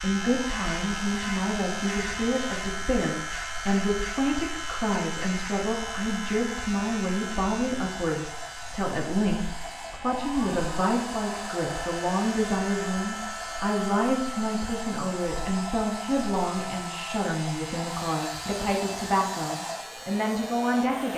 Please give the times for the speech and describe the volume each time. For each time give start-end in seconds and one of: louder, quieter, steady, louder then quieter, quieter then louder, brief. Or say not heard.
0.0-21.1 steady.